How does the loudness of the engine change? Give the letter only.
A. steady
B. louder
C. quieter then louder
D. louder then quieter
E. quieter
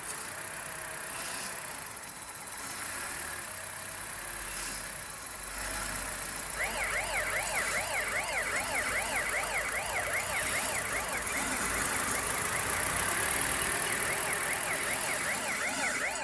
B.